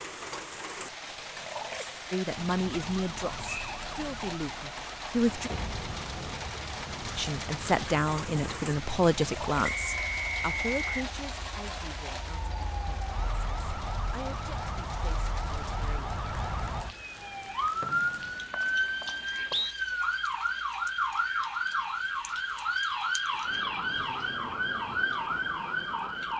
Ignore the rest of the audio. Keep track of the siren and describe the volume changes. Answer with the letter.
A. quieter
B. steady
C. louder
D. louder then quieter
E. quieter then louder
C.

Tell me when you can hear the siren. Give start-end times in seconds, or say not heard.
2.3-26.3.